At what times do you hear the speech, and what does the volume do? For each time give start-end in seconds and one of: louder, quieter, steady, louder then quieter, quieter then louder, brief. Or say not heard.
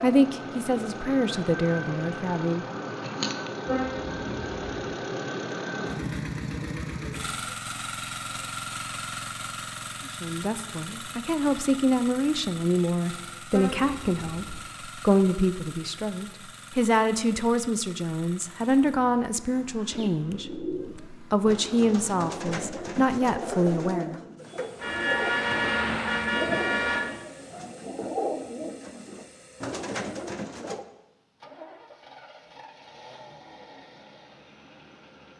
0.0-2.6 brief
10.1-24.2 steady.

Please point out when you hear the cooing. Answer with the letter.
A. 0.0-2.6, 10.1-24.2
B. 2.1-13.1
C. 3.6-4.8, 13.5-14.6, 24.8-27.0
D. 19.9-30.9
D.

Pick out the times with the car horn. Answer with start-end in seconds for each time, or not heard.
3.6-4.8, 13.5-14.6, 24.8-27.0.